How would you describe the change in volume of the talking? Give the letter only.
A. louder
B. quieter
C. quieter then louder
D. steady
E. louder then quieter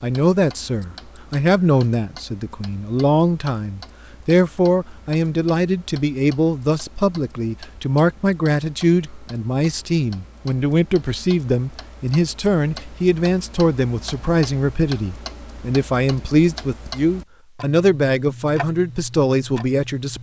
D.